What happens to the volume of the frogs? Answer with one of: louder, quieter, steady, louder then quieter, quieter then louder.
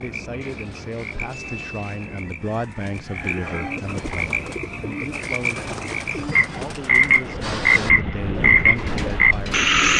louder.